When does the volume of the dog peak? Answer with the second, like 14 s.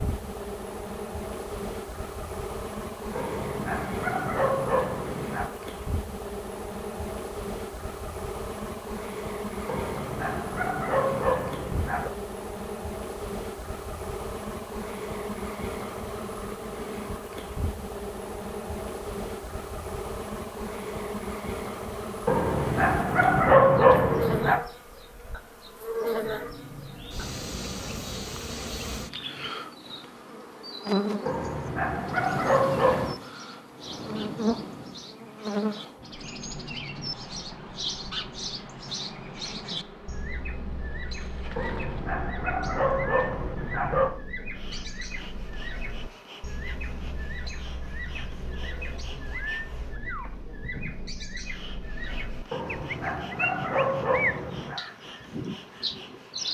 24 s.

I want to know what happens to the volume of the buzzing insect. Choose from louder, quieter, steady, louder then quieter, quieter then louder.
quieter.